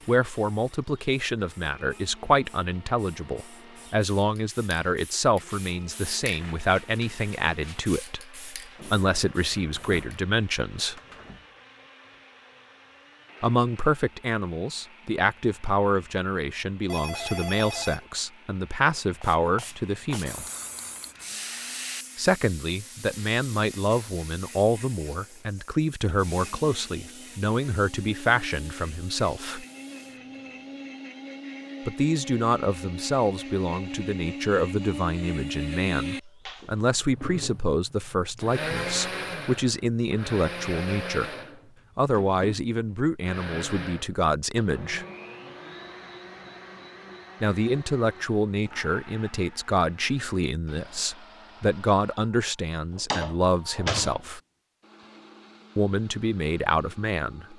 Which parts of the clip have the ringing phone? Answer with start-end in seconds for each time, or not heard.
16.9-18.1.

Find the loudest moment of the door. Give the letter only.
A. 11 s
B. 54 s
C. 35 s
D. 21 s
B.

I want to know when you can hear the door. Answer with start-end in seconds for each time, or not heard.
8.8-11.4, 53.0-54.2.